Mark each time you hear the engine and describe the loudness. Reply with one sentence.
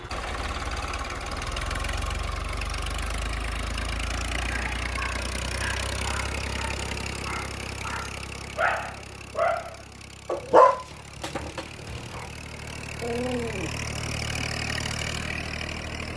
The engine can be heard from 0.0 to 16.1 s, getting quieter then louder.